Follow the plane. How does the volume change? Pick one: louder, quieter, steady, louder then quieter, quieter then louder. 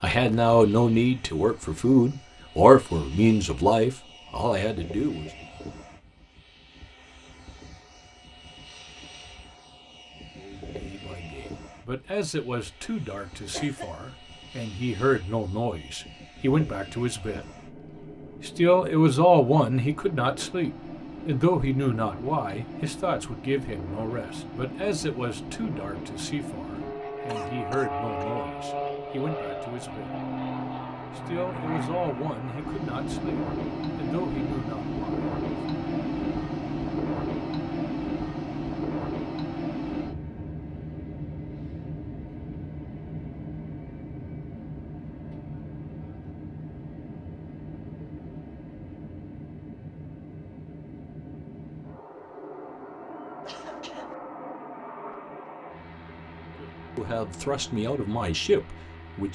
louder then quieter.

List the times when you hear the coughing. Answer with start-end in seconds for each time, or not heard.
13.5-13.9, 27.2-28.2, 53.4-54.1.